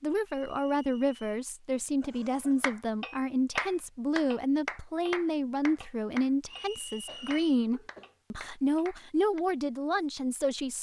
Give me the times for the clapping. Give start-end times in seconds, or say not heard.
2.6-9.4.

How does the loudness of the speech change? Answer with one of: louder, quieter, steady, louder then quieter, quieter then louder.
steady.